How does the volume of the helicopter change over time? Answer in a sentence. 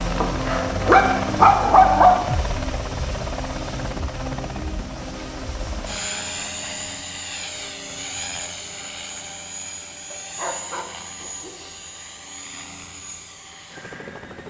The volume of the helicopter goes down.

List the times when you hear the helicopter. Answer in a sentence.
The helicopter can be heard from 0.0 to 14.4 s.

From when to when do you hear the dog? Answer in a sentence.
The dog can be heard from 0.2 to 2.2 s and from 10.1 to 11.6 s.